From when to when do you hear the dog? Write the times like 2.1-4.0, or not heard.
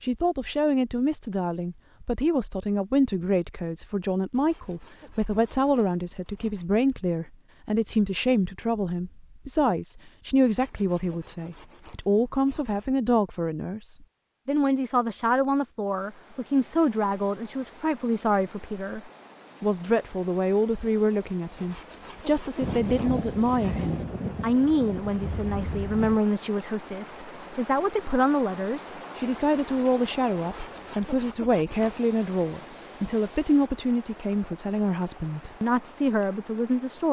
not heard.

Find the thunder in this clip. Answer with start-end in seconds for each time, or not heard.
22.6-26.2.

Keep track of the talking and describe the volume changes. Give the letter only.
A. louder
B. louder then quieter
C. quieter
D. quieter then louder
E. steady
E.